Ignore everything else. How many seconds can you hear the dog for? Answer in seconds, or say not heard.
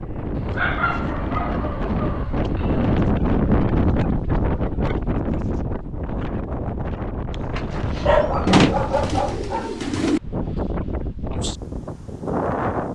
5 s.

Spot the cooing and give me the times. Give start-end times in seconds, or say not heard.
8.4-10.2.